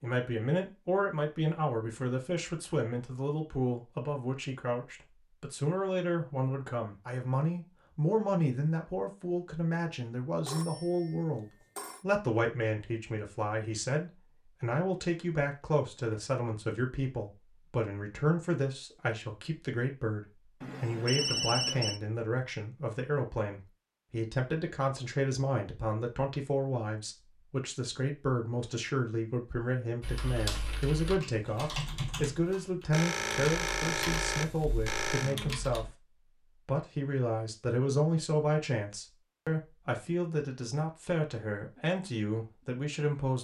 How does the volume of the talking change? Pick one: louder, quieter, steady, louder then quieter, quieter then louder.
steady.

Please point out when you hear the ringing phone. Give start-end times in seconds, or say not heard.
10.4-12.1, 20.6-22.0, 32.9-35.4.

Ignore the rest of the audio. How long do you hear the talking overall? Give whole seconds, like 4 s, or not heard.
43 s.